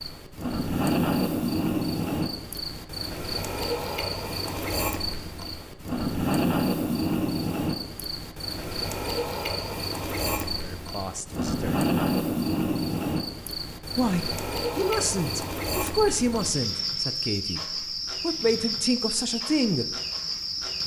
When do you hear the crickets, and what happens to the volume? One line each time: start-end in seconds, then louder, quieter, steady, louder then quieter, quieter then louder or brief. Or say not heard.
0.0-20.8 steady.